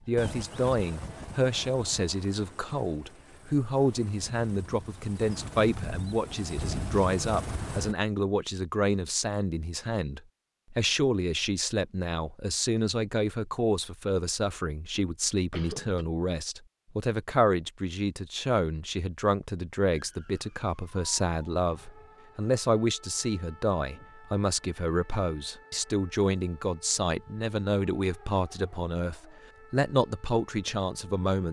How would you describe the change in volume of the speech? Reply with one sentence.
The loudness of the speech stays about the same.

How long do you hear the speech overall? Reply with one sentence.
The speech can be heard for 31 seconds in total.